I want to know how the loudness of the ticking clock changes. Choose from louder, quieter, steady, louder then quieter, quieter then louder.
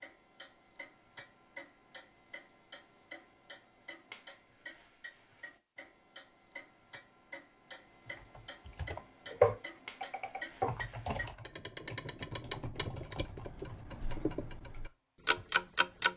louder.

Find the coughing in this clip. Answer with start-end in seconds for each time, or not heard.
not heard.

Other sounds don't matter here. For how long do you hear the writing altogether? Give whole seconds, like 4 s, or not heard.
not heard.